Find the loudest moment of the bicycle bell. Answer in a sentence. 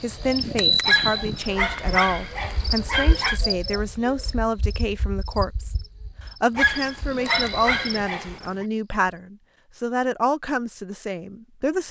The volume of the bicycle bell peaks at 1 second.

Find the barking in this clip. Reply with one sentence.
The barking can be heard from 0.8 to 3.4 s and from 6.5 to 8.7 s.